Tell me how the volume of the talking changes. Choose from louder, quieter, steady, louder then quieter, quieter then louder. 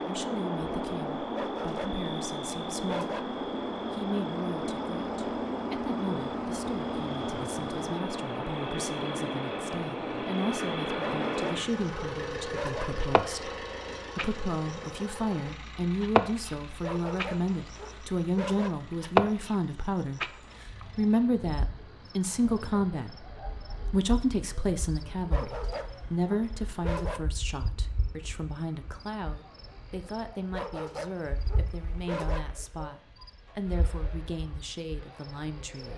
louder then quieter.